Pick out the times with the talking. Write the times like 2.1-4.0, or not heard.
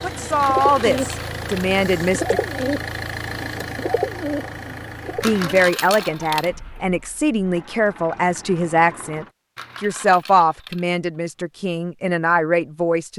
0.0-2.4, 5.2-13.1.